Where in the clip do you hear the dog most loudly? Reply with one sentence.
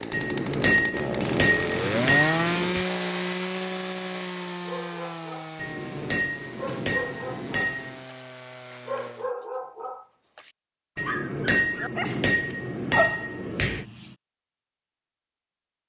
The volume of the dog peaks at 13 seconds.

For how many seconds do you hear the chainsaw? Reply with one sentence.
The chainsaw can be heard for 9 seconds in total.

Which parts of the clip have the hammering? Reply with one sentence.
The hammering can be heard from 0.1 to 2.9 s, from 5.5 to 8.0 s and from 10.9 to 13.8 s.